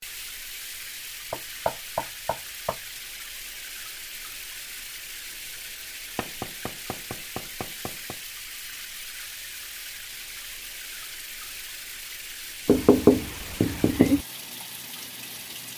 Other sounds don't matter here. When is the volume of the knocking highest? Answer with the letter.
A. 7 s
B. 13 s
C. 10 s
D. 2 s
B.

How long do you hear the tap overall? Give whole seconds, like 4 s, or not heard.
16 s.